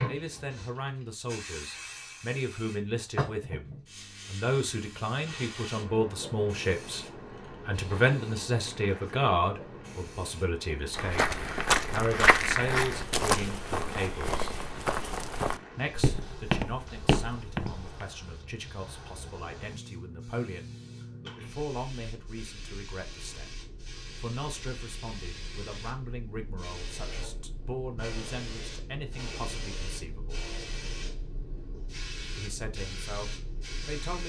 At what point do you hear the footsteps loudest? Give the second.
12 s.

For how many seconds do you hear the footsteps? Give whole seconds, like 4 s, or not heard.
7 s.